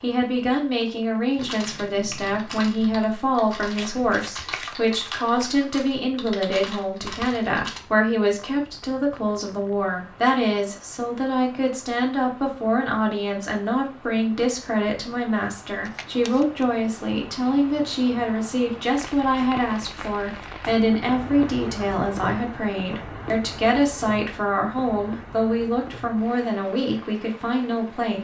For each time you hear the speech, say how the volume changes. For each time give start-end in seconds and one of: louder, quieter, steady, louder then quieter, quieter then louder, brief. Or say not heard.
0.0-28.1 steady.